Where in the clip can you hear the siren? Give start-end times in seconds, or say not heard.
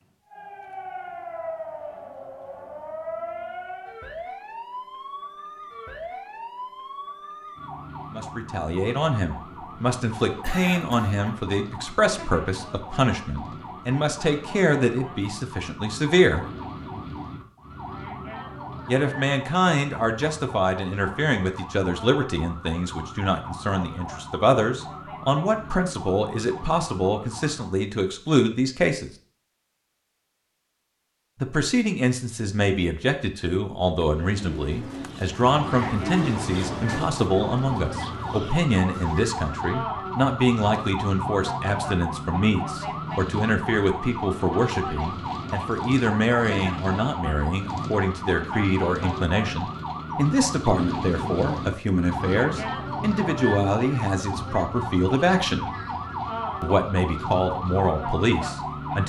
0.0-27.8, 35.0-59.0.